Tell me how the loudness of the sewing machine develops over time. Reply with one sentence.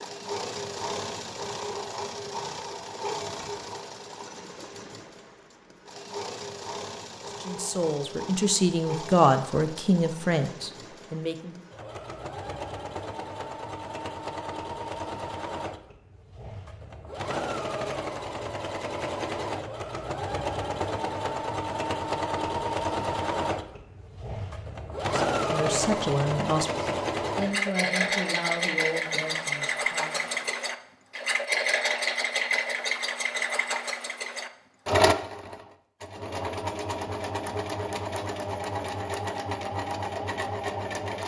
The volume of the sewing machine goes up.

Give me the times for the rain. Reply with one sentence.
You can't hear the rain here.